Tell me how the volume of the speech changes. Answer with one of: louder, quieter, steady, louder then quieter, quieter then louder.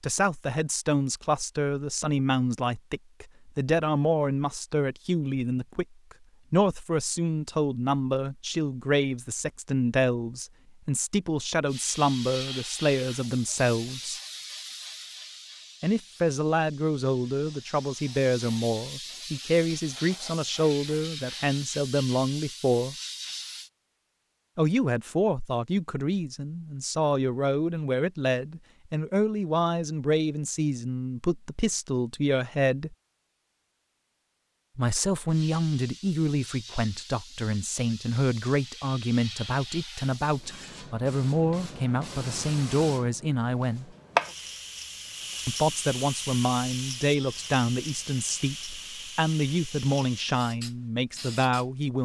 steady.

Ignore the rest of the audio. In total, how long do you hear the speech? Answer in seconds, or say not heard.
45 s.